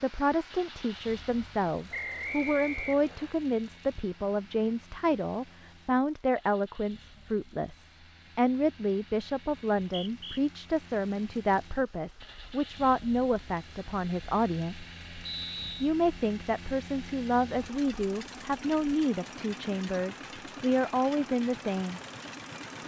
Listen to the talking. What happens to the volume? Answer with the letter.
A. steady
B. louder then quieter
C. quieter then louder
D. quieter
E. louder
A.